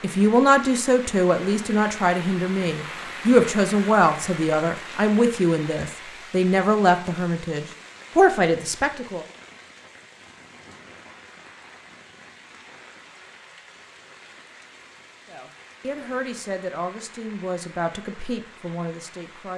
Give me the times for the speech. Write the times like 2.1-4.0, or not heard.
0.0-9.2, 15.2-19.5.